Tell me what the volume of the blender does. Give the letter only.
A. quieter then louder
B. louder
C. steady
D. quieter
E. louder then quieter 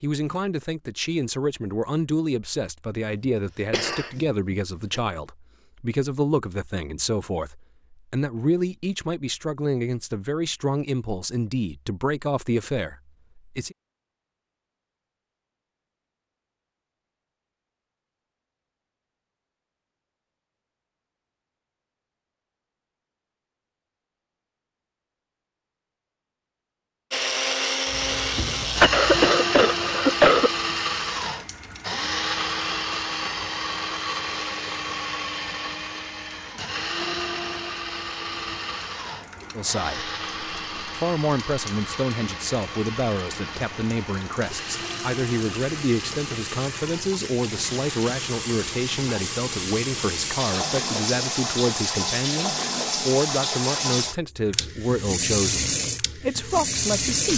D.